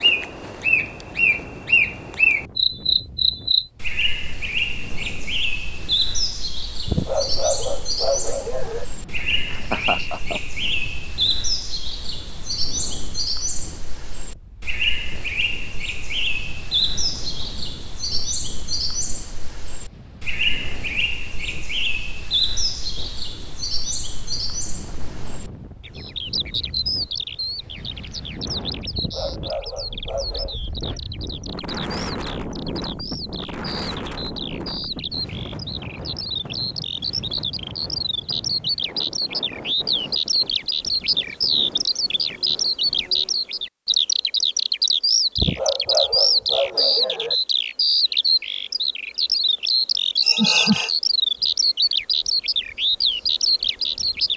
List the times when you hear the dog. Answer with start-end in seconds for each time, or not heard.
6.8-8.8, 28.9-30.6, 45.4-47.4.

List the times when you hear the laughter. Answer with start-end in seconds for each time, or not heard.
9.5-10.4, 50.2-50.9.